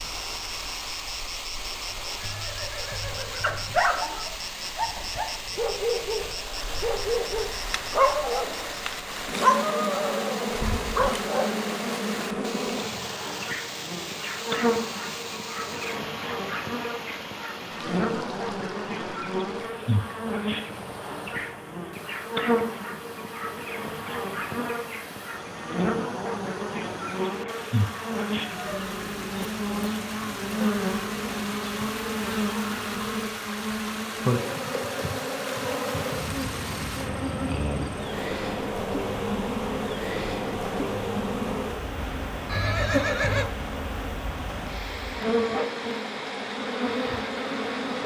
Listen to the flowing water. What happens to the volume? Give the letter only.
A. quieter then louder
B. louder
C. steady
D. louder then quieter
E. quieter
A.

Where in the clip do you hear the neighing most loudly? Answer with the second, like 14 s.
43 s.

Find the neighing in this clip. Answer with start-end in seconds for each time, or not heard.
2.1-3.8, 42.5-43.5.